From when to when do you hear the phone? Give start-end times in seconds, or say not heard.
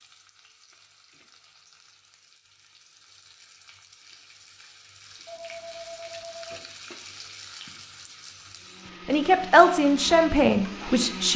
5.2-6.7.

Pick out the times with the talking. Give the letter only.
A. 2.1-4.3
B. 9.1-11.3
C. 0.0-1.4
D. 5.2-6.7
B.